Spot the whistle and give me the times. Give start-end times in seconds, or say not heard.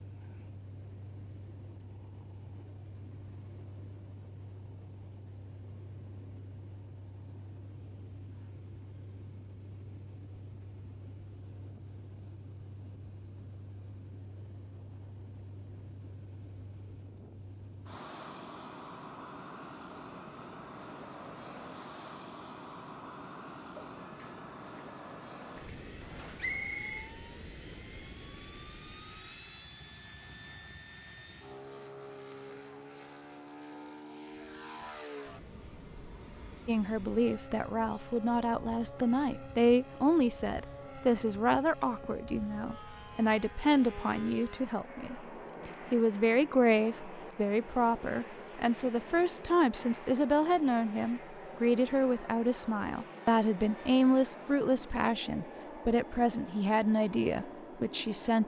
26.4-27.1.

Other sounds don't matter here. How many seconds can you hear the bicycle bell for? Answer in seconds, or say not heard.
2 s.